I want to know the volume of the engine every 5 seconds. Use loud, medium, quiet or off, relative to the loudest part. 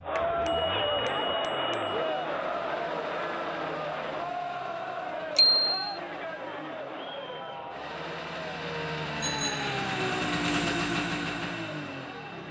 quiet, medium, loud.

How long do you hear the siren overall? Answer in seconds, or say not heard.
not heard.